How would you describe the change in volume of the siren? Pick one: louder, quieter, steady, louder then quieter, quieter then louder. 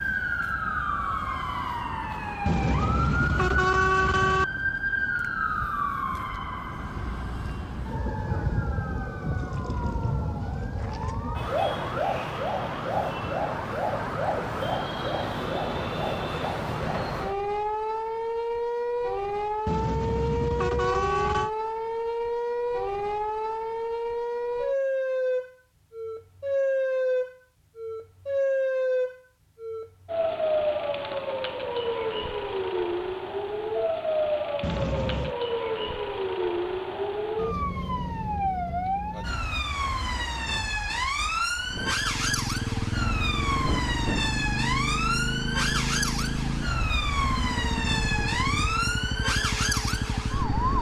steady.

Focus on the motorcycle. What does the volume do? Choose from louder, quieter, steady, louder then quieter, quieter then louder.
steady.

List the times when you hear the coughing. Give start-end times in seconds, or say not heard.
not heard.